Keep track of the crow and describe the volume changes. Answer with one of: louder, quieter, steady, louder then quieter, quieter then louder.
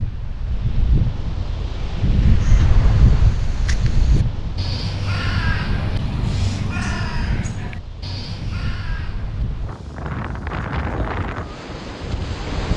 louder then quieter.